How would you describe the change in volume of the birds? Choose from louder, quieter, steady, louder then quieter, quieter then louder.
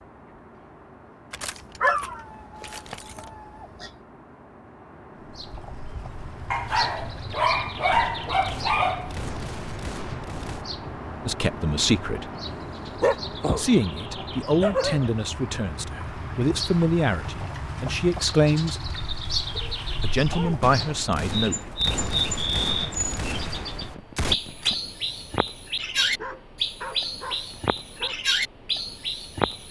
louder.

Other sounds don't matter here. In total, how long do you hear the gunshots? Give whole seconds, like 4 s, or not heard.
7 s.